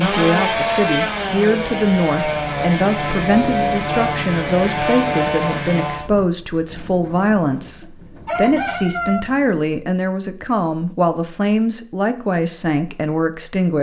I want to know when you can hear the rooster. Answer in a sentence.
The rooster can be heard from 7.8 to 9.2 s.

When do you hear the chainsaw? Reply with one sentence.
The chainsaw can be heard from 0.0 to 6.1 s.